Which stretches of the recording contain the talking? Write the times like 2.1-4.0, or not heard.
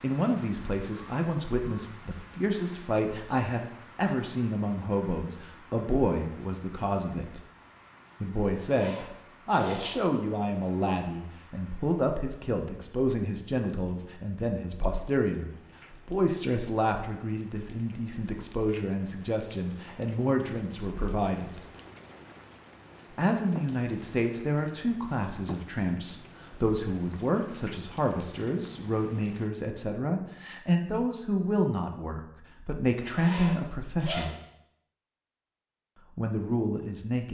0.0-7.5, 8.2-21.6, 23.1-34.4, 36.1-37.2.